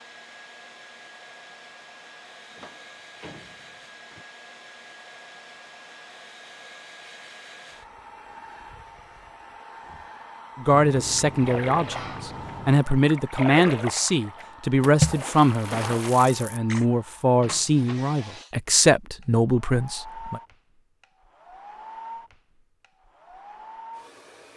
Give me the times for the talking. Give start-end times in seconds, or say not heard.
10.6-20.4.